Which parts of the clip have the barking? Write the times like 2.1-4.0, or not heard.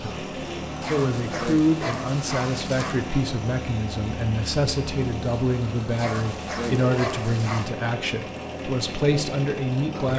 0.8-3.0, 6.0-7.7.